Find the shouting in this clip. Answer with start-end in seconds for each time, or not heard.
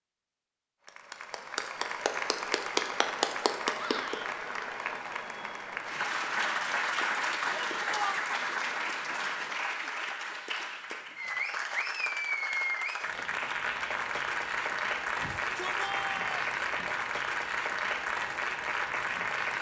3.8-4.3, 7.5-8.2, 15.2-16.5.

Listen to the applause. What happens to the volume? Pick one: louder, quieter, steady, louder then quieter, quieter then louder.
steady.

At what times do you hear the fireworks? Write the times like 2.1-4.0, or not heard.
not heard.